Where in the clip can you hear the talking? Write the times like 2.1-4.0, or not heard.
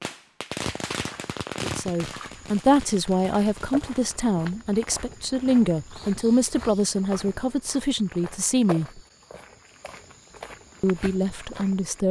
1.6-9.0, 10.8-12.0.